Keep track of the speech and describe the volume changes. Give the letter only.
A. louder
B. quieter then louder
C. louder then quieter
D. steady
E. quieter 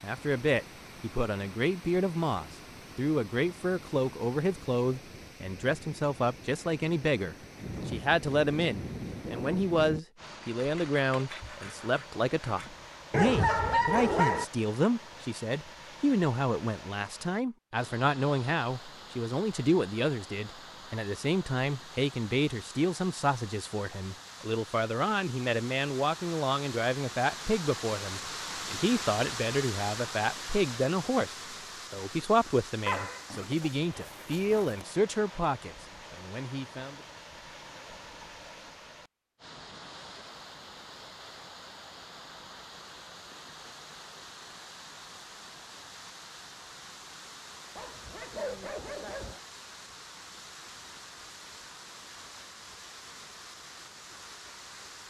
D.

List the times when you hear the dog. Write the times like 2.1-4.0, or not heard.
13.1-14.4, 32.9-34.8, 47.8-49.4.